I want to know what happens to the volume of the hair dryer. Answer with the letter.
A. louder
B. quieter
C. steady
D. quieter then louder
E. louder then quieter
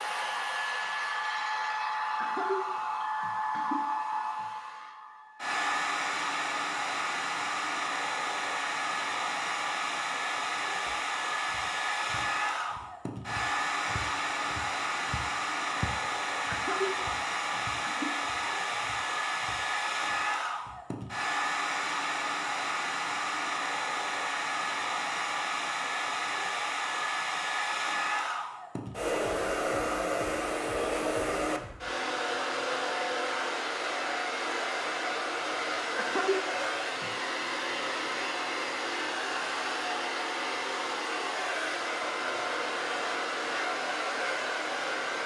C.